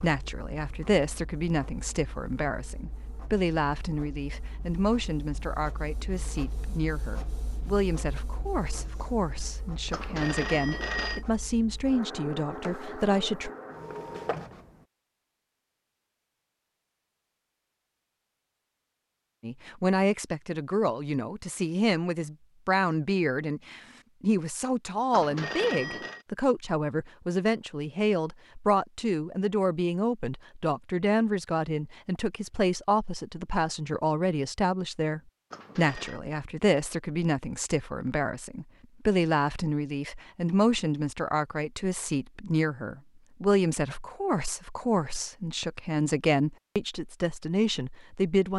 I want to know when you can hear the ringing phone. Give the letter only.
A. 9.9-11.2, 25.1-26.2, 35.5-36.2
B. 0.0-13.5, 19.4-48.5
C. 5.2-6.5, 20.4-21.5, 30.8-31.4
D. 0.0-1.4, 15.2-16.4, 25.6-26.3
A.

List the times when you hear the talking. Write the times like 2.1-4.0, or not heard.
0.0-13.5, 19.4-48.5.